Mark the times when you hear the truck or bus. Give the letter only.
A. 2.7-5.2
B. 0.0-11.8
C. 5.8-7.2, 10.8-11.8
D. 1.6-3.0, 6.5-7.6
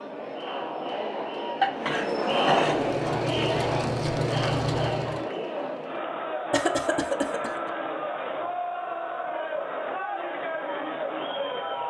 A.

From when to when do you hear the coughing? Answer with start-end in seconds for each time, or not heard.
1.6-3.0, 6.5-7.6.